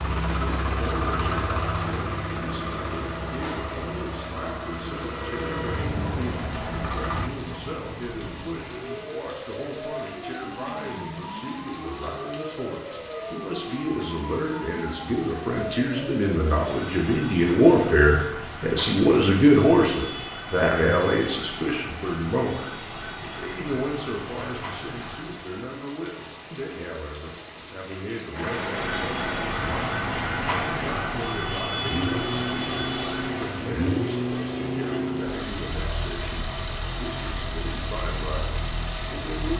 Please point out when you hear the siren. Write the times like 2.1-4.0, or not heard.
5.1-25.6, 28.6-33.6.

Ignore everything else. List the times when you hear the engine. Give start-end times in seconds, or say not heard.
0.0-7.3, 28.3-39.5.